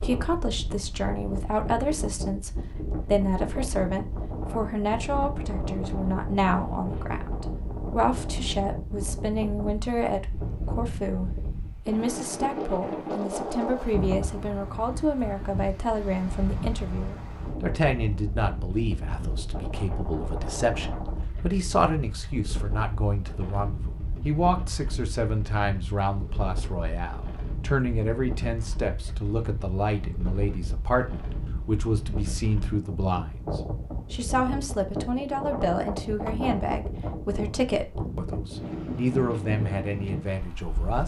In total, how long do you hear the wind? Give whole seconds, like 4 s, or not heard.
41 s.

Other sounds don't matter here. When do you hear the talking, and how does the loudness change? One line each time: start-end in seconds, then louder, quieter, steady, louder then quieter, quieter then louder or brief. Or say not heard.
0.0-41.0 steady.